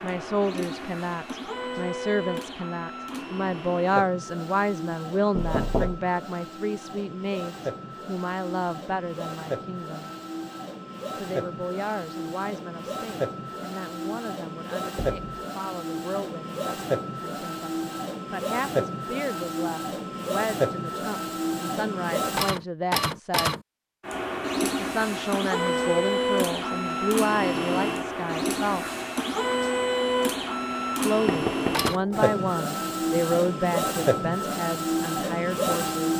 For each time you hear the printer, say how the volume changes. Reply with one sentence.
The printer can be heard from 0.0 to 36.1 s, getting louder.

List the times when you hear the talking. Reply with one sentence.
You can hear the talking from 0.0 to 10.1 s, from 11.2 to 23.5 s, from 24.8 to 28.9 s and from 30.9 to 36.1 s.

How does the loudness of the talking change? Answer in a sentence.
The loudness of the talking goes down, then up.